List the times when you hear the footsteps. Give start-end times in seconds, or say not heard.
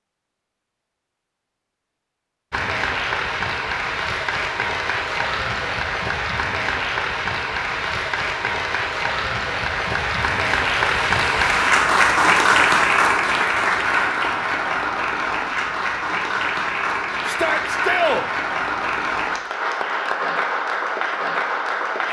not heard.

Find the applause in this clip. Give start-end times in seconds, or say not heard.
2.5-22.0.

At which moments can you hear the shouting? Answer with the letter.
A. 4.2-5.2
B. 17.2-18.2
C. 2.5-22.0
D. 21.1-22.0
B.